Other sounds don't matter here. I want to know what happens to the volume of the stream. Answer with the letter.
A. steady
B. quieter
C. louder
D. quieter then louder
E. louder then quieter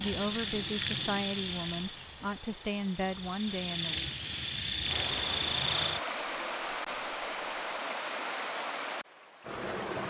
C.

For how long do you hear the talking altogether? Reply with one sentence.
The talking can be heard for 4 seconds in total.